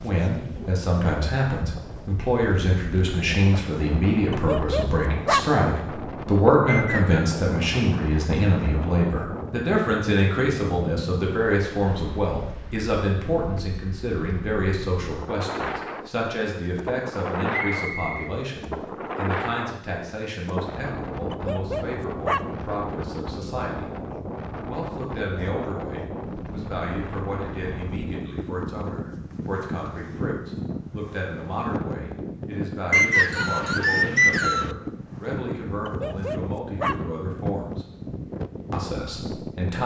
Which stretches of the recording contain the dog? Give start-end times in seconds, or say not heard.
4.3-5.5, 21.3-22.4, 35.9-37.0.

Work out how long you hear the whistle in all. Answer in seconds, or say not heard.
3 s.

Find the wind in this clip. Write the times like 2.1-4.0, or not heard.
0.0-39.8.